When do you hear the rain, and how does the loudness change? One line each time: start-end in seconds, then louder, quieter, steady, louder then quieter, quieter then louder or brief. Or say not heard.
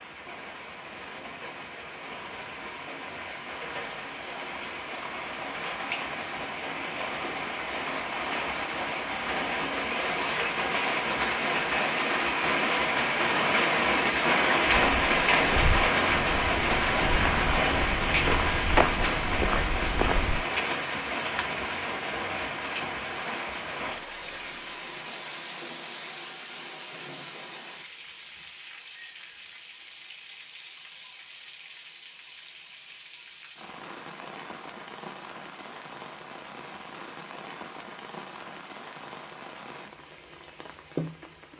0.0-41.5 louder then quieter.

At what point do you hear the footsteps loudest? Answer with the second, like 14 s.
19 s.